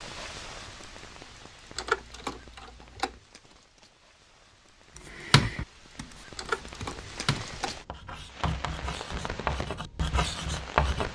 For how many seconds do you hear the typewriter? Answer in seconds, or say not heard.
3 s.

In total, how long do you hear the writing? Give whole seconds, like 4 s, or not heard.
6 s.